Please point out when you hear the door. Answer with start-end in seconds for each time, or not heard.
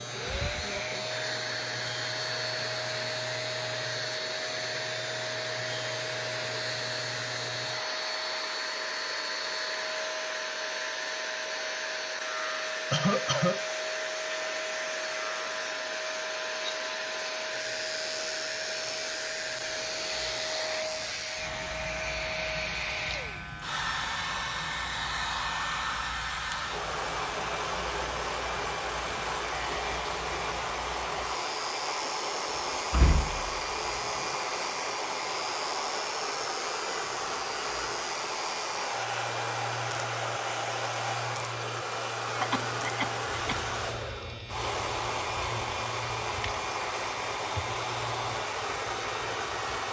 32.5-34.4.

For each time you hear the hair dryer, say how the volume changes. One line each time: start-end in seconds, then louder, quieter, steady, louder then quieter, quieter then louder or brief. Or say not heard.
0.0-49.8 steady.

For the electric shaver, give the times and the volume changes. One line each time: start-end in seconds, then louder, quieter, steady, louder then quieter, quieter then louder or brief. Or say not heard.
0.0-49.8 steady.